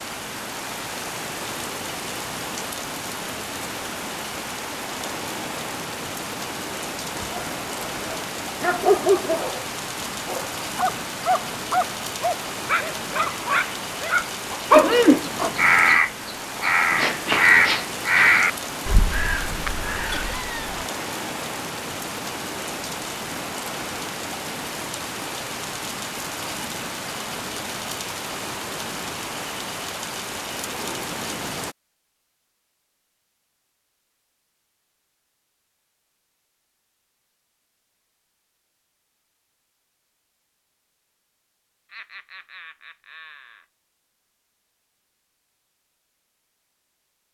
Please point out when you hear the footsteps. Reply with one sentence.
The footsteps can't be heard in this clip.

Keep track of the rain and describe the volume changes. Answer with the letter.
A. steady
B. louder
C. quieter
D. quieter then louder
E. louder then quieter
A.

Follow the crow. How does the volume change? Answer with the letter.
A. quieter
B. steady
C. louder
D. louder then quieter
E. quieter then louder
A.